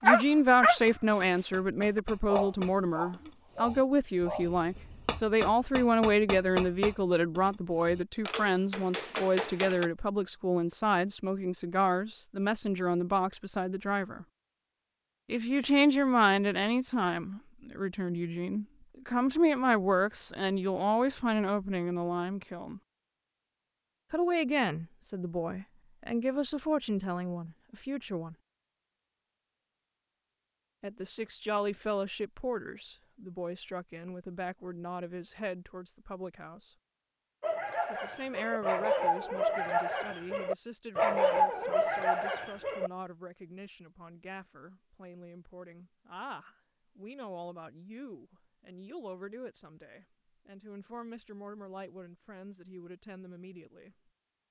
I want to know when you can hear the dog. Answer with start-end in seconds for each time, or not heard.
0.0-4.5, 37.4-42.9.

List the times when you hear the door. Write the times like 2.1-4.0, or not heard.
not heard.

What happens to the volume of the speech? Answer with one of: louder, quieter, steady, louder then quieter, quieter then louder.
quieter.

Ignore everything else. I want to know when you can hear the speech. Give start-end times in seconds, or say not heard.
0.0-14.2, 15.3-22.8, 24.1-28.4, 30.8-36.7, 37.9-54.0.